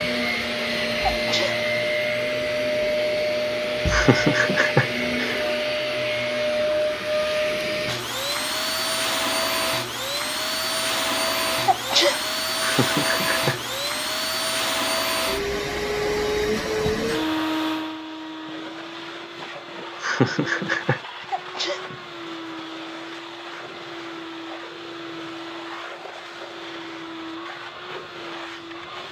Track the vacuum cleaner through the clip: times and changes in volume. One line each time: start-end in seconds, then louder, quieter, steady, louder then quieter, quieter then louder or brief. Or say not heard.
0.0-29.0 quieter.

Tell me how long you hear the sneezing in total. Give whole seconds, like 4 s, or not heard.
2 s.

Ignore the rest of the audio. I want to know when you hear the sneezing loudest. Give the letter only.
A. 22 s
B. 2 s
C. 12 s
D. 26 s
C.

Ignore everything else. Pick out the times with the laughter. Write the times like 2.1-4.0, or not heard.
3.9-5.5, 12.6-13.8, 20.0-21.0.